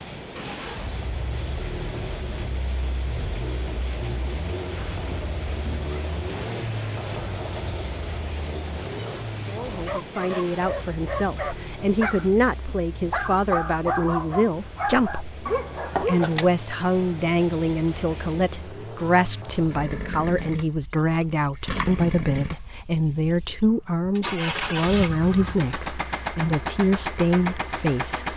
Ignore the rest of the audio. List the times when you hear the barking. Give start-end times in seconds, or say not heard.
9.8-16.4.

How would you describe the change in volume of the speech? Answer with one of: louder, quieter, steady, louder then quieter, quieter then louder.
steady.